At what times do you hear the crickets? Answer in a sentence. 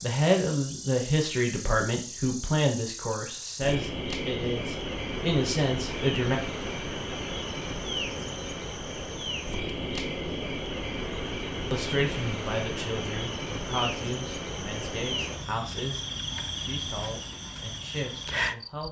The crickets can be heard from 0.0 to 18.8 s.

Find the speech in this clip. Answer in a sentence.
The speech can be heard from 0.0 to 6.4 s and from 11.7 to 18.8 s.